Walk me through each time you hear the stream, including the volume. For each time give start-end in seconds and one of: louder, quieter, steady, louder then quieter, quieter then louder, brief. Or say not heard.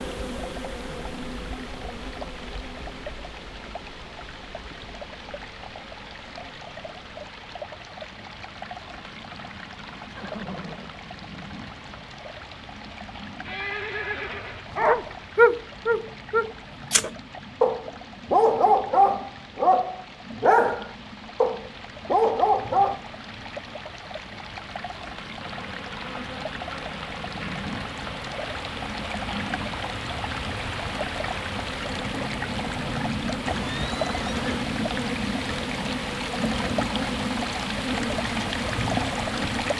0.0-39.7 louder.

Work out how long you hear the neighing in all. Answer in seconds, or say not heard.
3 s.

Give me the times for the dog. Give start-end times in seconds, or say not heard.
14.8-23.0.